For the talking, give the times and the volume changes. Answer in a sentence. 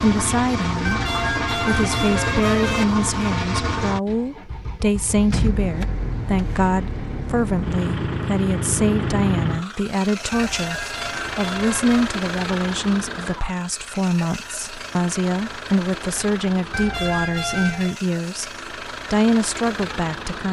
You can hear the talking from 0.0 to 18.5 s, at a steady volume; and briefly from 19.1 to 20.4 s.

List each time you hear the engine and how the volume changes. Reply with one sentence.
You can hear the engine from 0.0 to 20.4 s, getting quieter.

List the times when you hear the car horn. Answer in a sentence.
You can hear the car horn from 0.8 to 2.9 s, from 10.3 to 12.2 s and from 16.7 to 17.9 s.